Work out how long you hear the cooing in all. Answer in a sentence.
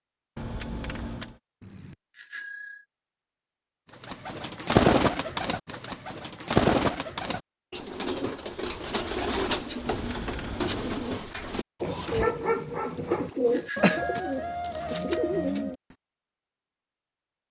The cooing can be heard for 12 seconds in total.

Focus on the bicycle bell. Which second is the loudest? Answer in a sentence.
The volume of the bicycle bell peaks at 14 seconds.